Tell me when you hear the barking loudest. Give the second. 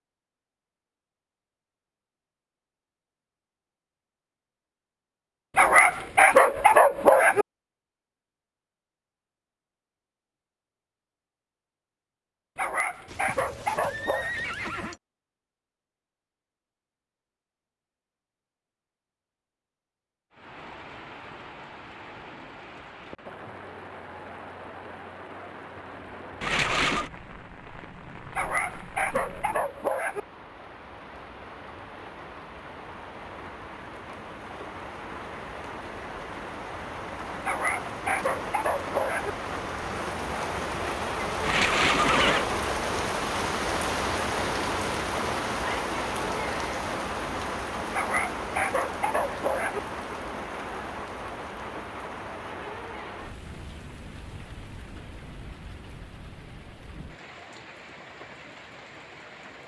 6 s.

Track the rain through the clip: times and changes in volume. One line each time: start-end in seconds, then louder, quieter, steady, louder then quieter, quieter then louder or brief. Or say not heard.
20.3-59.6 louder then quieter.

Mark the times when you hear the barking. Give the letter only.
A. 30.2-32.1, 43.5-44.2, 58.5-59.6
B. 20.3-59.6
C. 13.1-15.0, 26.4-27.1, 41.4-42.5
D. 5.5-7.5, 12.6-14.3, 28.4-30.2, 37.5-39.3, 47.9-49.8
D.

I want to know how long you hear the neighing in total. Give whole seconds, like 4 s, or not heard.
4 s.